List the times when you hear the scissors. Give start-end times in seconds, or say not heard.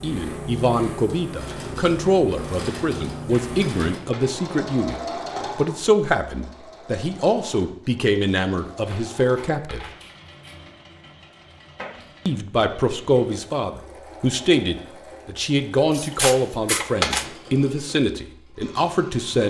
3.1-4.3, 8.7-10.6, 15.9-17.2.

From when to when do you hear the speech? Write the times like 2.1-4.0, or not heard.
0.0-9.8, 12.2-19.4.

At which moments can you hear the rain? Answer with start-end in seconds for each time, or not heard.
not heard.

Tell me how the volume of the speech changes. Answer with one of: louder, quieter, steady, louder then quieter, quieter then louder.
steady.